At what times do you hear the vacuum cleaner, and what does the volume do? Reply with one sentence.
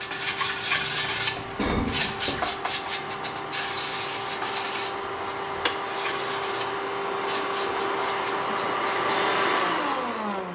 You can hear the vacuum cleaner from 0.0 to 10.4 s, getting louder.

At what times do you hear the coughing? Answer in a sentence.
The coughing can be heard from 1.2 to 2.5 s.